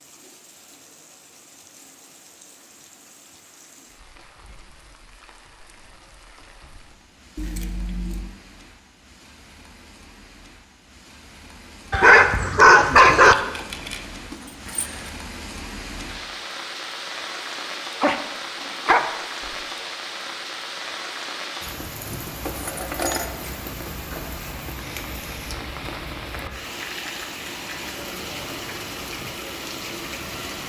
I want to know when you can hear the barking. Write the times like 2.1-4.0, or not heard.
11.9-13.3, 18.0-19.1.